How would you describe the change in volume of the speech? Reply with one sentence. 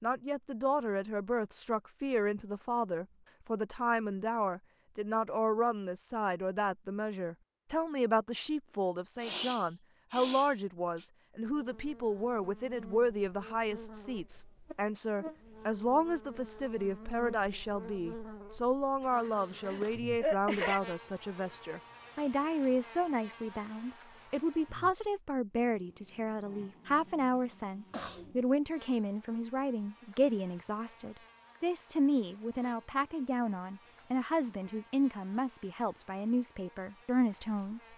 The loudness of the speech stays about the same.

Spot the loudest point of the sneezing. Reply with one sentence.
The loudest moment of the sneezing is at 20 seconds.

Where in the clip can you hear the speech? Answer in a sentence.
The speech can be heard from 0.0 to 37.8 s.